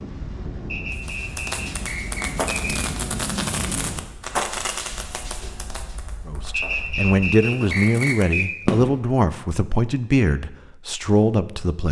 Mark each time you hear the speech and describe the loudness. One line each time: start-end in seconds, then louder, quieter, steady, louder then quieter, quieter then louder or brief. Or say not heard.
6.2-11.8 steady.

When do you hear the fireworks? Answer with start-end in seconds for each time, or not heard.
0.9-9.0.